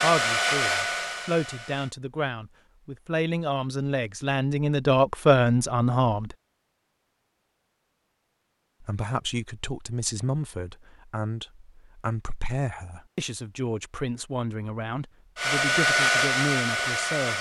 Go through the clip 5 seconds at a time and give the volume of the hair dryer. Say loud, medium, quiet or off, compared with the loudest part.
loud, off, off, loud.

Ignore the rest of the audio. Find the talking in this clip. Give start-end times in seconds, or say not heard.
0.0-6.3, 8.8-17.3.